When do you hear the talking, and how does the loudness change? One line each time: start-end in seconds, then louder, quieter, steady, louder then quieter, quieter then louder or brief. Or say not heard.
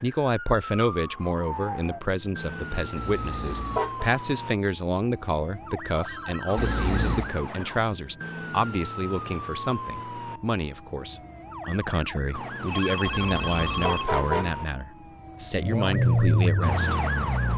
0.0-16.9 steady.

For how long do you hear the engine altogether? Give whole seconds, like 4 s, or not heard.
2 s.